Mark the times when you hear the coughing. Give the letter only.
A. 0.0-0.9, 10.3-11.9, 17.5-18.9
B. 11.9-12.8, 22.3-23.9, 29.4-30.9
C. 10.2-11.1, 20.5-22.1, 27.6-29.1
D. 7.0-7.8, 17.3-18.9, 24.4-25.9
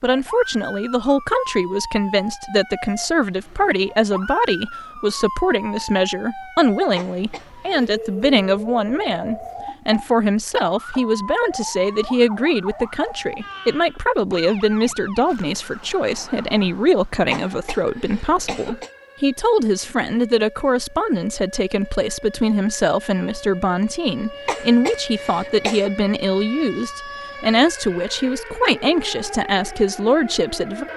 D.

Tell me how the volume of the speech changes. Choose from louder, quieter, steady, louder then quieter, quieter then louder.
steady.